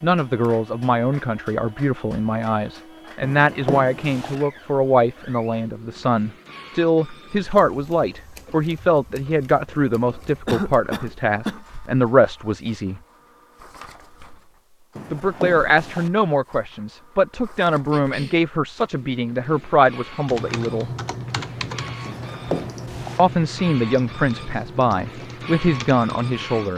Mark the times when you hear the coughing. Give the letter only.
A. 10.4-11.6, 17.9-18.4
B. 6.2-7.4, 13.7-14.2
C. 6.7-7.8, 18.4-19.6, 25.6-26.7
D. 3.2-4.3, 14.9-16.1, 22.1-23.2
A.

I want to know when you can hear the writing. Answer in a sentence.
You can hear the writing from 3.2 to 4.3 s, from 14.9 to 16.1 s and from 22.1 to 23.2 s.